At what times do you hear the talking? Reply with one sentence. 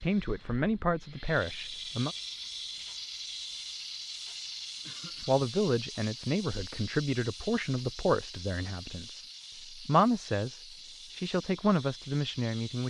The talking can be heard from 0.0 to 2.1 s and from 5.2 to 12.8 s.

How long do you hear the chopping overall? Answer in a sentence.
You can't hear the chopping here.